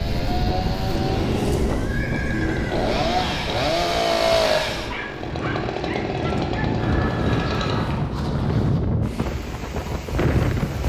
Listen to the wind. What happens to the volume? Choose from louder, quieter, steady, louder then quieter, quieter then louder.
quieter then louder.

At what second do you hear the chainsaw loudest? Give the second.
4 s.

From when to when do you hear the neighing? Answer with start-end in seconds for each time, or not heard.
0.8-3.5, 6.8-8.8.